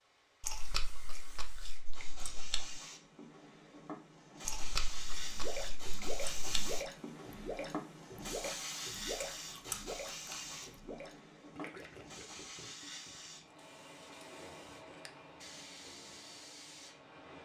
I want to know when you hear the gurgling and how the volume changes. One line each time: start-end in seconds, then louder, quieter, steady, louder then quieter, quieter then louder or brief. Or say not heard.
5.2-13.3 quieter.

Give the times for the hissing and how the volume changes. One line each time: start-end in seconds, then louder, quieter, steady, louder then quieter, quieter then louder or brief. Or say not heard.
0.0-17.4 louder then quieter.